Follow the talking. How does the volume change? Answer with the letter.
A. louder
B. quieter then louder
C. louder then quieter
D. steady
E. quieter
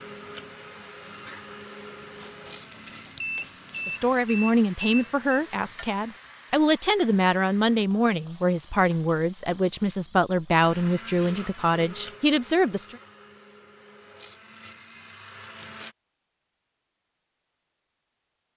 D.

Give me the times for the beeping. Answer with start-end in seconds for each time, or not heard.
3.2-5.4.